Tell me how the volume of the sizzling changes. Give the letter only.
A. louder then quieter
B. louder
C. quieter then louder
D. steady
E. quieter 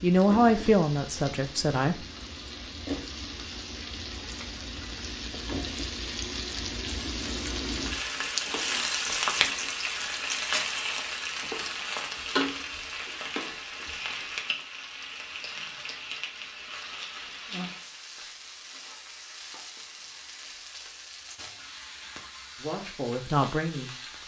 A.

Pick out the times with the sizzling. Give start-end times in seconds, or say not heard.
0.0-24.2.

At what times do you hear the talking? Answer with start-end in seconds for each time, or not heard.
0.0-1.9, 22.6-24.2.